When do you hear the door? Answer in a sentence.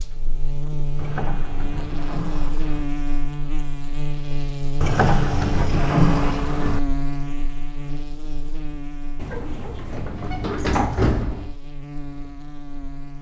The door can be heard from 0.9 to 2.9 s, from 4.8 to 6.8 s and from 9.2 to 11.6 s.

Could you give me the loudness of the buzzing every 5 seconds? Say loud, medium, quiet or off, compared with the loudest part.
loud, loud, medium.